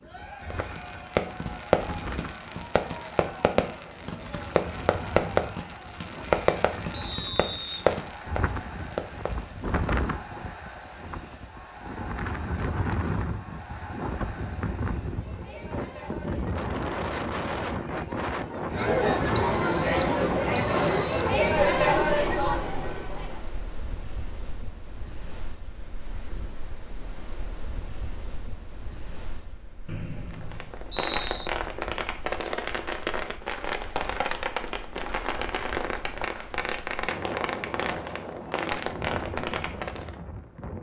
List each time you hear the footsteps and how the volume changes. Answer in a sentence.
The footsteps can't be heard in this clip.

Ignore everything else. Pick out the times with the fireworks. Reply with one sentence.
You can hear the fireworks from 0.5 to 10.1 s and from 30.3 to 40.1 s.